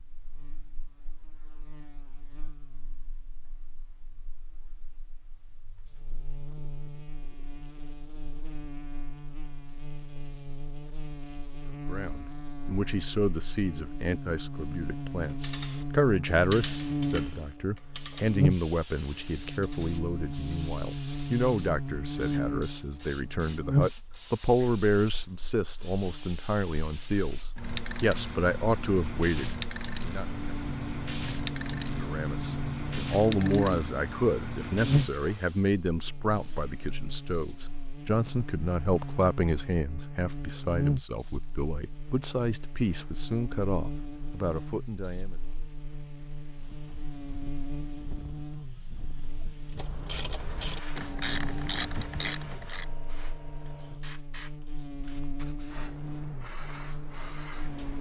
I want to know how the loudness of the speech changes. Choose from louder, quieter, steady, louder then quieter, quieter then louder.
steady.